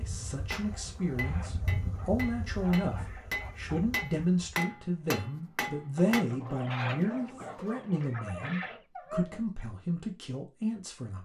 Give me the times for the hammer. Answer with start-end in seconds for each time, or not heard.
0.5-6.2.